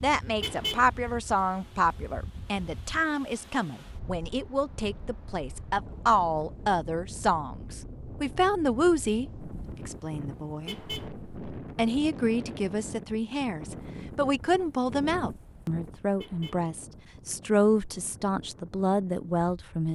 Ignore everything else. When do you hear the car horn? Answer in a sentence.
You can hear the car horn from 0.4 to 0.8 s, from 10.7 to 11.1 s and from 16.1 to 16.6 s.